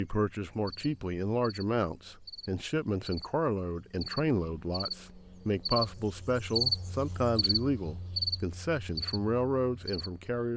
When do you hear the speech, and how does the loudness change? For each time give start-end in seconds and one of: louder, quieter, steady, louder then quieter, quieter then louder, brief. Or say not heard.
0.0-10.5 steady.